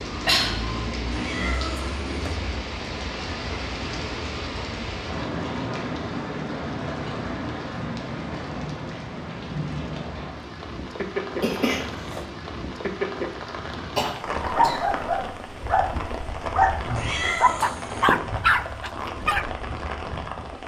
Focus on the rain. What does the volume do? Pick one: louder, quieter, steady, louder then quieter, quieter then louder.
steady.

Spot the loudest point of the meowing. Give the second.
17 s.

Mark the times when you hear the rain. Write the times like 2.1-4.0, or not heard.
0.0-20.6.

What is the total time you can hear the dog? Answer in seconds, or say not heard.
5 s.